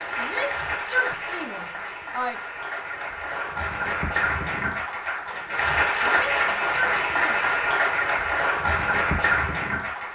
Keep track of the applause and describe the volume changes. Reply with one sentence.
The loudness of the applause goes up.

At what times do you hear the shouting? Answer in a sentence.
The shouting can be heard from 0.1 to 2.4 s and from 6.0 to 7.6 s.